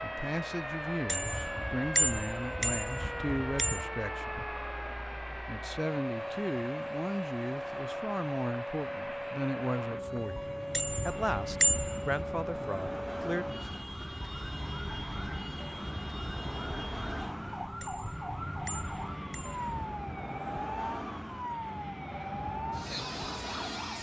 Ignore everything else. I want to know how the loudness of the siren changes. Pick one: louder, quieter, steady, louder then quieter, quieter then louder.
steady.